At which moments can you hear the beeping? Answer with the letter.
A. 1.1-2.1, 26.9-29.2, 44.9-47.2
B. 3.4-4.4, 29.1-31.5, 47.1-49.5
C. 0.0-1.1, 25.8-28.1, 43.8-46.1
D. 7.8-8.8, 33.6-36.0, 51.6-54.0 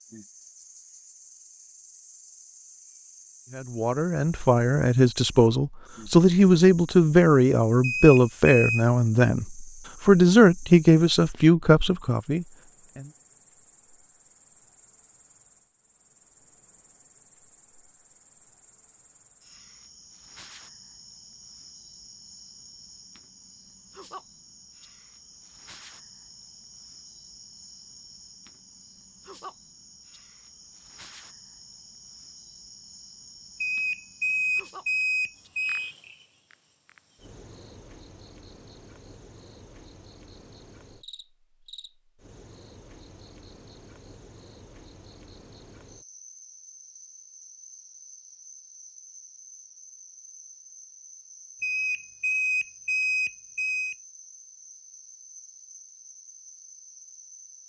D.